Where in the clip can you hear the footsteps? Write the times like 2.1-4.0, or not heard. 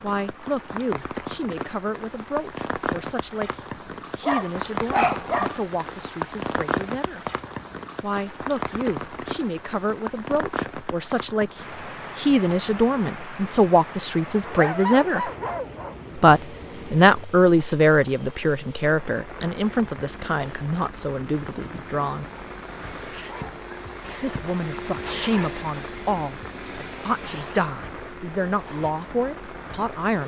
not heard.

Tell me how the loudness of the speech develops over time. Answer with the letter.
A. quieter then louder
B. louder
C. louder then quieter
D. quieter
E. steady
C.